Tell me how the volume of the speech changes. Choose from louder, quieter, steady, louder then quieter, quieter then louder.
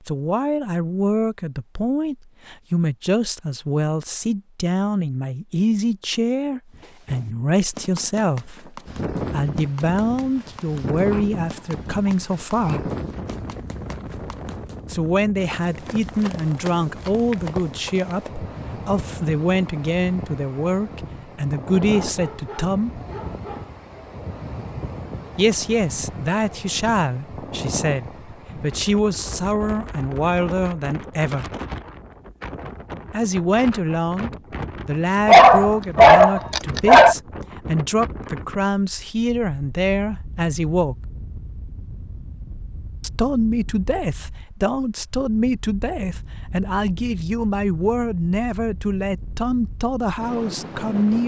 steady.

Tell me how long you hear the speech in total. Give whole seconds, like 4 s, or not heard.
43 s.